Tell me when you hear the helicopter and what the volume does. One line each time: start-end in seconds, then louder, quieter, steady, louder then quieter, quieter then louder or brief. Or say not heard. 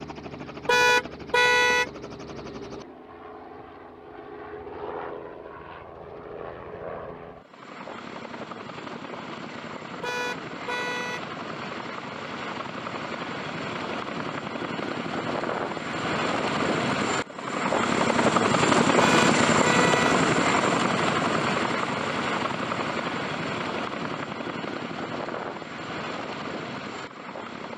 0.0-27.7 louder then quieter.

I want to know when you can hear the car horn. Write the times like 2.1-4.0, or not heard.
0.7-1.9, 10.0-11.2, 18.9-20.1.